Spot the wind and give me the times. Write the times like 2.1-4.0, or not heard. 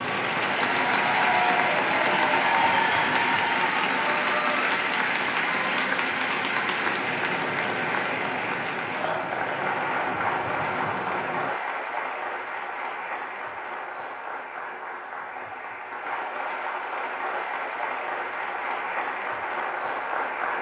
0.0-11.5.